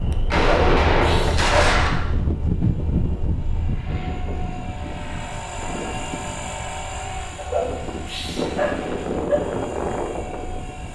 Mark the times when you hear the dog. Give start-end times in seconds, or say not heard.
0.3-1.8, 7.3-9.3.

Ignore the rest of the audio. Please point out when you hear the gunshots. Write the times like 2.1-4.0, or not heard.
0.3-2.0.